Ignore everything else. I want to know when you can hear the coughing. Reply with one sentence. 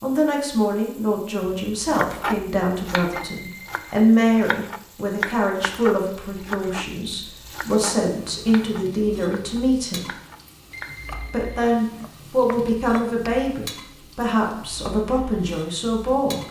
You can't hear the coughing here.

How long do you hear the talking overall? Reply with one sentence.
You can hear the talking for 15 seconds altogether.